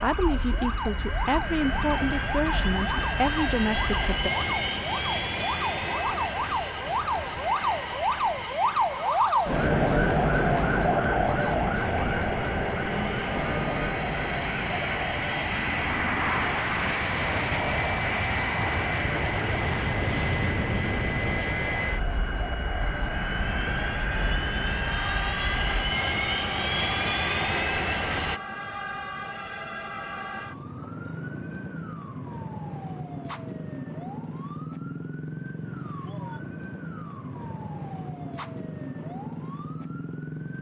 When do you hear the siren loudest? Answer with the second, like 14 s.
10 s.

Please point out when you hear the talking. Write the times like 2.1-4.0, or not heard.
0.0-4.3.